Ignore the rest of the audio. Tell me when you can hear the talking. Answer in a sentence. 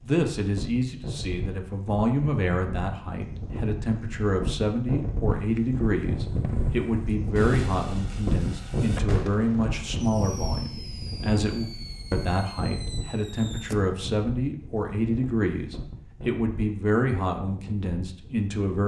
You can hear the talking from 0.0 to 18.8 s.